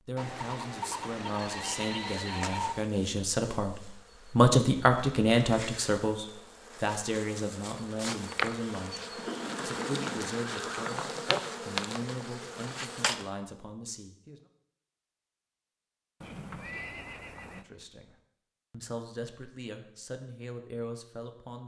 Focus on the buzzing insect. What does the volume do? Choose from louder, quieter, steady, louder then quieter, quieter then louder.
louder.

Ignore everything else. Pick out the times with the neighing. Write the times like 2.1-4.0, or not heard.
0.1-2.9, 9.1-11.2, 16.2-17.6.